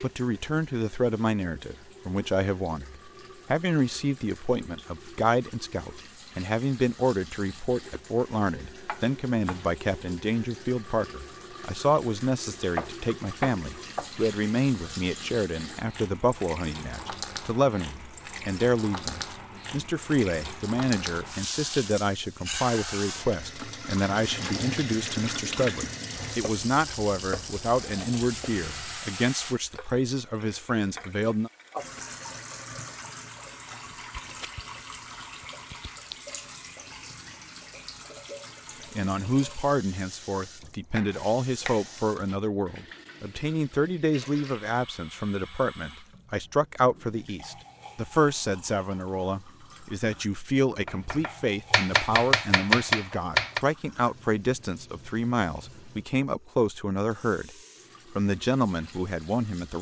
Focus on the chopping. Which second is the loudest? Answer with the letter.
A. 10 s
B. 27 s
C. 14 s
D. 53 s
D.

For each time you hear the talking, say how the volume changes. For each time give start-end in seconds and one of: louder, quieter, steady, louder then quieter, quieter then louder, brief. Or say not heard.
0.0-31.5 steady
38.9-57.5 steady
58.1-59.7 brief.